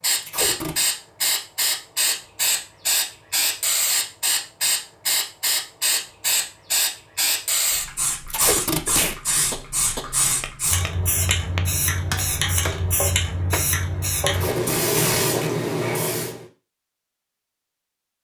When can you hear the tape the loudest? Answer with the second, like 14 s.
9 s.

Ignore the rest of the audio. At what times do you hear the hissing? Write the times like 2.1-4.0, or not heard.
0.0-16.4.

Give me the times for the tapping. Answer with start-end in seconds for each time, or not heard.
8.3-14.4.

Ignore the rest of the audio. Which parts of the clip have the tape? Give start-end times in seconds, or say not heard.
0.2-0.8, 8.3-9.2, 14.3-15.5.